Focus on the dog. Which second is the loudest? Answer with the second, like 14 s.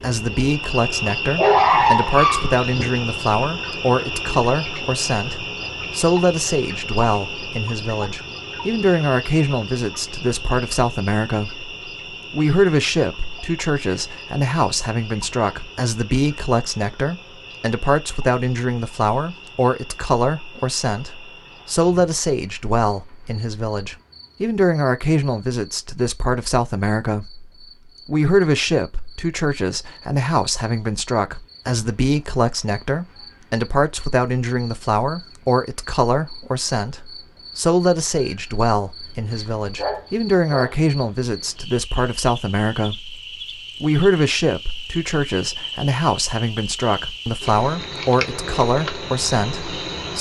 2 s.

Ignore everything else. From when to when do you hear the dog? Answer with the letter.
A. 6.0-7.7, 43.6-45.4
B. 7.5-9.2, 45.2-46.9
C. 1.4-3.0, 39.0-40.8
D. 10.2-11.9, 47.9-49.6
C.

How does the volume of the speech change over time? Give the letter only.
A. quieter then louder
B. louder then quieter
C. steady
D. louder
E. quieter
C.